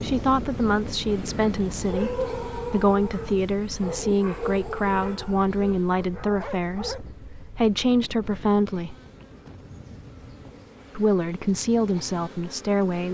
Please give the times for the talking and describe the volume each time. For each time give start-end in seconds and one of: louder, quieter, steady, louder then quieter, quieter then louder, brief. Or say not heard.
0.0-8.9 steady
10.9-13.0 brief.